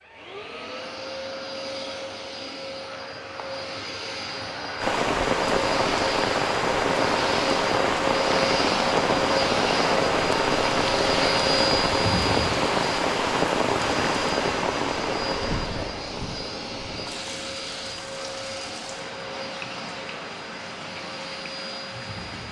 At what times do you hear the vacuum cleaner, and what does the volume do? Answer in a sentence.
You can hear the vacuum cleaner from 0.0 to 22.4 s, getting louder then quieter.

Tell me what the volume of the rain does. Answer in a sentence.
The volume of the rain goes down.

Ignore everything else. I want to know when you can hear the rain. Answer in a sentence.
The rain can be heard from 4.8 to 22.4 s.